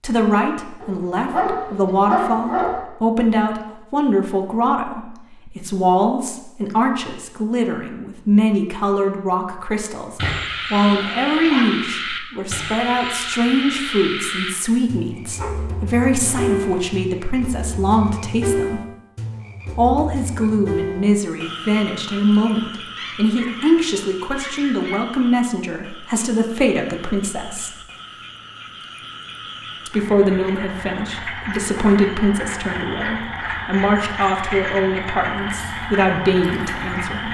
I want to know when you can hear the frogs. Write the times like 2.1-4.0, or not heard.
10.2-37.2.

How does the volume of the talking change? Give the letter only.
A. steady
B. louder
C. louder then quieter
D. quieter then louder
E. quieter
A.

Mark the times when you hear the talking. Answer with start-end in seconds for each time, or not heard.
0.0-18.8, 19.8-27.8, 29.9-37.2.